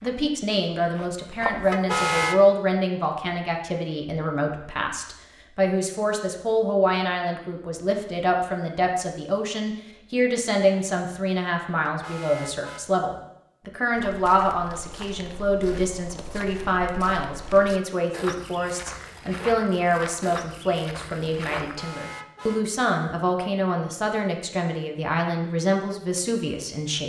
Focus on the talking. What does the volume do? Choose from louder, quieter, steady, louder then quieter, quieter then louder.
steady.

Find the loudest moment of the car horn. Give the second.
2 s.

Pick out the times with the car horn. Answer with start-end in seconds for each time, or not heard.
1.7-2.4, 11.8-12.8, 21.6-22.6.